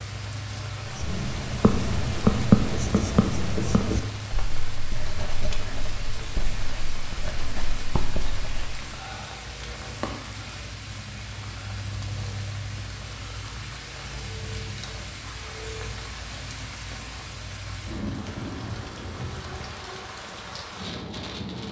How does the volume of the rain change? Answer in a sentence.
The loudness of the rain stays about the same.